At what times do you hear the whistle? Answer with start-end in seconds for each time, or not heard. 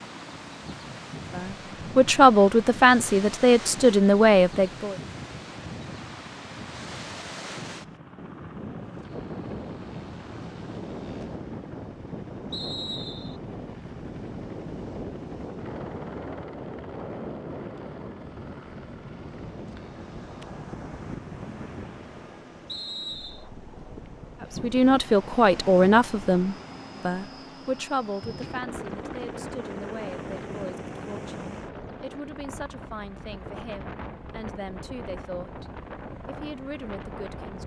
12.5-13.4, 22.6-23.4.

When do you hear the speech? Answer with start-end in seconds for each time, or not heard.
1.4-5.0, 24.6-35.6, 36.2-37.6.